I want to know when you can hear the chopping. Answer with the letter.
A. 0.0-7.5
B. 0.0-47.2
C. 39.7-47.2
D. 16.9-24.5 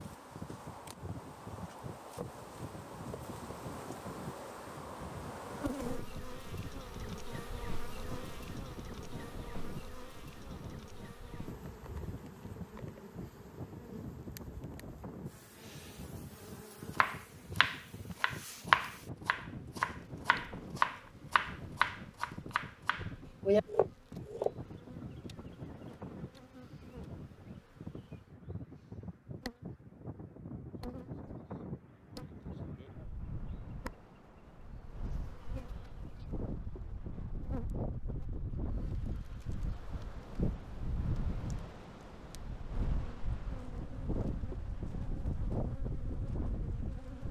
D.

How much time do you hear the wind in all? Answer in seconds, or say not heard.
47 s.